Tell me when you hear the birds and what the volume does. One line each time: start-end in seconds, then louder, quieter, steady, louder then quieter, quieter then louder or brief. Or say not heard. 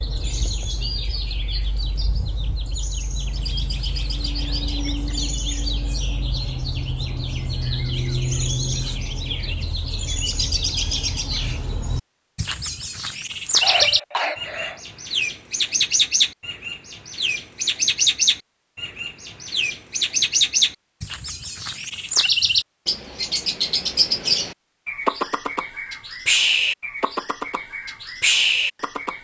0.0-29.1 louder.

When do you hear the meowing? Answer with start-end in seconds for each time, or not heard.
not heard.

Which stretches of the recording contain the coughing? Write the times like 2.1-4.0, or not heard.
13.6-14.8.